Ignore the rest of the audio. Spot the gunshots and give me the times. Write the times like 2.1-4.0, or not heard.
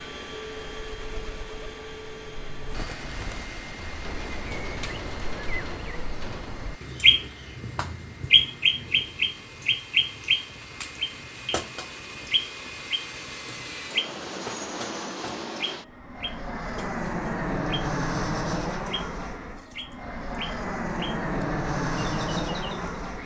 3.9-6.5.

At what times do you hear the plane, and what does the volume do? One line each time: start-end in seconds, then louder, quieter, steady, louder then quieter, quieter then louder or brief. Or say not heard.
0.0-23.2 quieter then louder.